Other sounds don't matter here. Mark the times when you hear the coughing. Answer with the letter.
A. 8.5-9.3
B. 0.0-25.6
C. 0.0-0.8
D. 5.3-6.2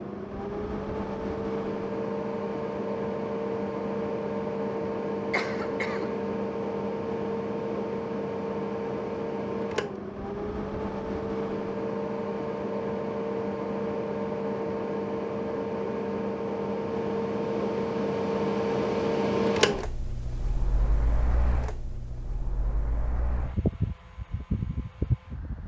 D.